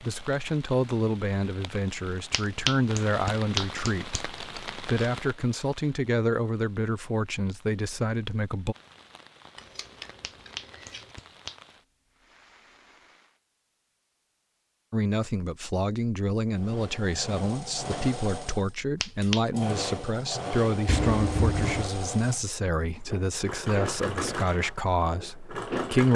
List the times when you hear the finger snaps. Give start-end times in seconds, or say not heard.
2.3-4.2, 10.2-11.6, 19.0-19.4.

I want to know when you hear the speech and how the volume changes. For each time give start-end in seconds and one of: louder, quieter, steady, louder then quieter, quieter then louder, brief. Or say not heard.
0.0-8.8 steady
14.9-26.1 steady.